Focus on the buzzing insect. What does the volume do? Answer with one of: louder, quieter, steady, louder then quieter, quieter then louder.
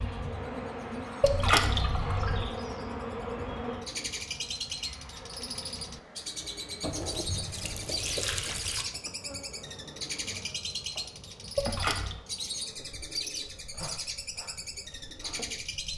quieter.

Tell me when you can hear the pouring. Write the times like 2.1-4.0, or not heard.
1.2-2.5, 6.8-8.8, 11.6-12.2.